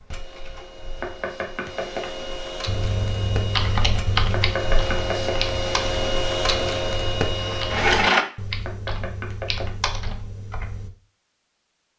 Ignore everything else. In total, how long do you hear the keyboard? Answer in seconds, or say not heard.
8 s.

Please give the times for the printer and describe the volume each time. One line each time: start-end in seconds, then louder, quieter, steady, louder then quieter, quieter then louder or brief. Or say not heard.
0.0-8.2 louder.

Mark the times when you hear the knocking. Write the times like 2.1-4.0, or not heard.
1.0-2.1, 4.3-5.5, 8.7-9.8.